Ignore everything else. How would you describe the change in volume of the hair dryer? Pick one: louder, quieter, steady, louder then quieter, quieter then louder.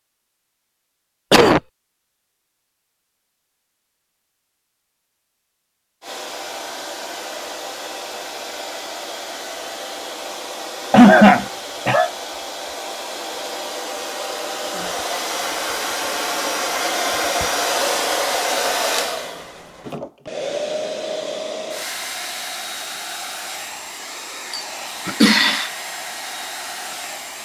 louder then quieter.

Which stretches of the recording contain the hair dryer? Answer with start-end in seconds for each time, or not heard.
6.0-27.4.